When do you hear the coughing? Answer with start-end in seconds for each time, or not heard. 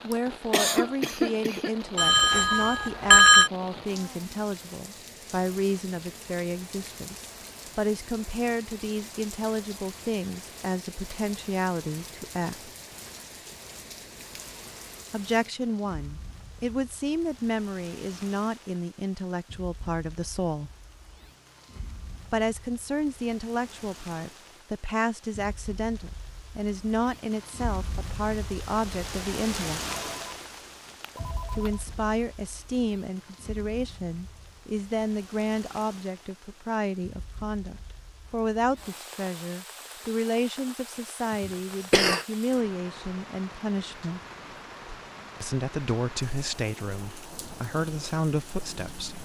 0.1-1.9, 41.4-42.2.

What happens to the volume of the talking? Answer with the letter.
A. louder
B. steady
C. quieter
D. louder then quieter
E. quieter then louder
B.